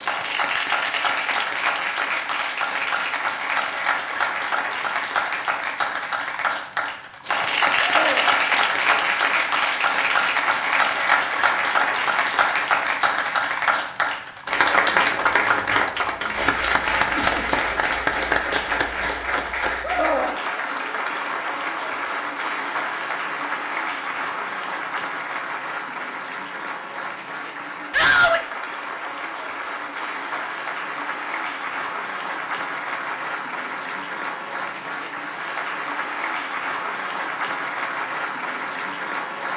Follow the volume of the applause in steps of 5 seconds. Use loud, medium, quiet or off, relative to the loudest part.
loud, loud, loud, loud, medium, medium, medium, medium.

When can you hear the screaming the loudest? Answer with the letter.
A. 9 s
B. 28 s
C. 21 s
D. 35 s
B.